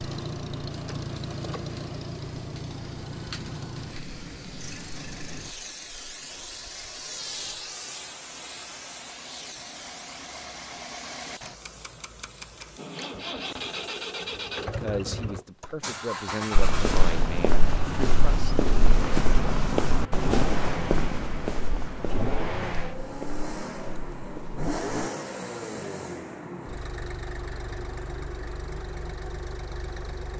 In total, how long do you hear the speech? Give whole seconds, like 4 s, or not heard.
4 s.